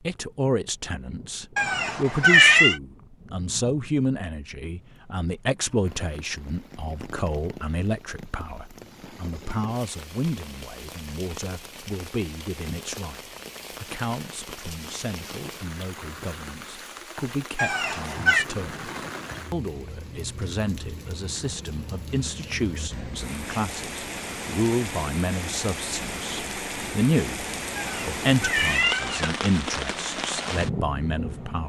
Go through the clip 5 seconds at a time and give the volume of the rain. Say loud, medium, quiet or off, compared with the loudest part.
quiet, quiet, medium, medium, medium, loud, loud.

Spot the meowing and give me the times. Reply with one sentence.
The meowing can be heard from 1.6 to 2.8 s, from 17.6 to 18.4 s and from 27.8 to 29.4 s.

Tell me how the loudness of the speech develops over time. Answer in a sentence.
The volume of the speech goes down, then up.